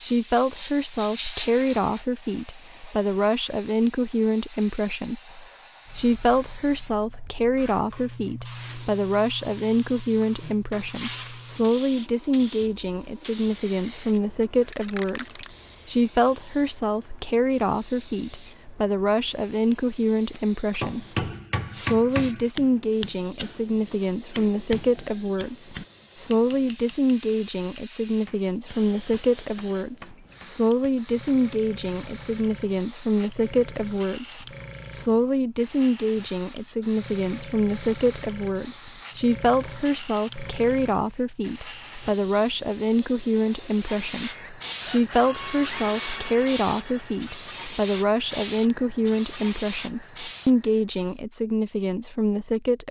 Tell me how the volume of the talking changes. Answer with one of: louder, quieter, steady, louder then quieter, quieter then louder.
steady.